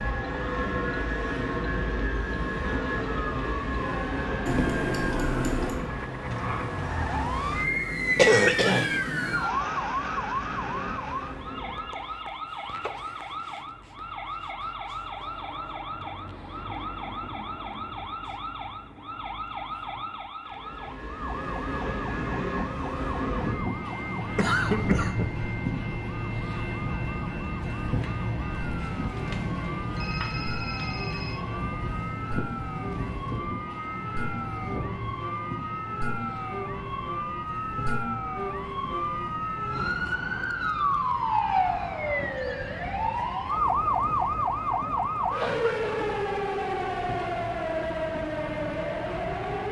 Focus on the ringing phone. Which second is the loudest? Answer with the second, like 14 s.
5 s.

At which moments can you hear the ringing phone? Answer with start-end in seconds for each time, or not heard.
4.5-5.8, 29.0-31.4.